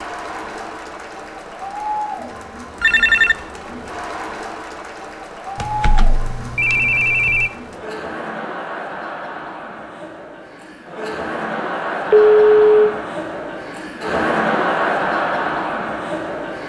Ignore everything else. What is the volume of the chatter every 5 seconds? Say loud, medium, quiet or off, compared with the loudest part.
medium, medium, loud, loud.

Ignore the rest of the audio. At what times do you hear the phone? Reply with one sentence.
The phone can be heard from 2.8 to 3.4 s, from 5.5 to 7.5 s and from 12.1 to 12.9 s.